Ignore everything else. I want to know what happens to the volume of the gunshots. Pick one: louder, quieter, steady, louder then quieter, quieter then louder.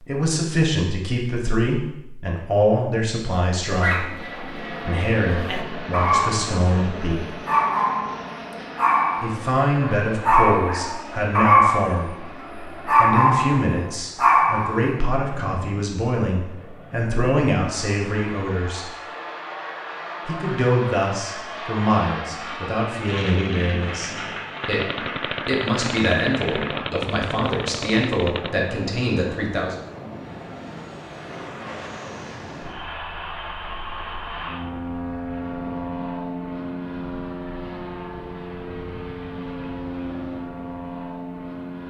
steady.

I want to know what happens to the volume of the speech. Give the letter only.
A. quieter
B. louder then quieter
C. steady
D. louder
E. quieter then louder
C.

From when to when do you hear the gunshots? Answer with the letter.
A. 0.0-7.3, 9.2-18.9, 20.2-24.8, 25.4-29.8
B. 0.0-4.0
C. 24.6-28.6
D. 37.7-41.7
C.